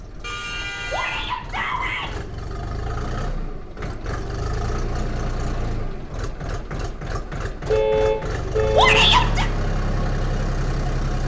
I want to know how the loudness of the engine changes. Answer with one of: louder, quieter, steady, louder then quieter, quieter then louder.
louder.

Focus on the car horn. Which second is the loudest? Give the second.
8 s.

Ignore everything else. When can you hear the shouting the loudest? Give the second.
9 s.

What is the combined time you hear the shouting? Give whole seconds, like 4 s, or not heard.
2 s.